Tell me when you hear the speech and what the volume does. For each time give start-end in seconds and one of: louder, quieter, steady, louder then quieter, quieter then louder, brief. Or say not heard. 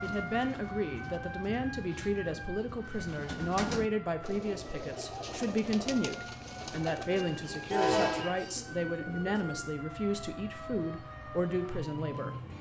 0.0-12.3 steady.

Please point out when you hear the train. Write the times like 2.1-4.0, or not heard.
7.2-8.7.